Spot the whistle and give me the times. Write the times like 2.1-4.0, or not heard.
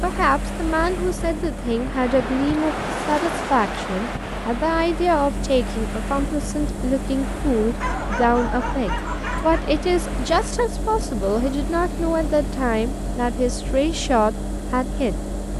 not heard.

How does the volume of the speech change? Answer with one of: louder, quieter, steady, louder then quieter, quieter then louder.
steady.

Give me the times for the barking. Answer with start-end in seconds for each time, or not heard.
7.8-9.7.